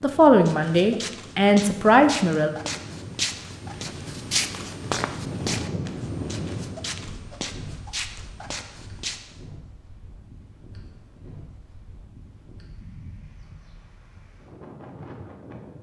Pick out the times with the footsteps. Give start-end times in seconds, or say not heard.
0.4-9.3.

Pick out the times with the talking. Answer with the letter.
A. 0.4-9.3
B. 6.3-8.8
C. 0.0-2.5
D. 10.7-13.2
C.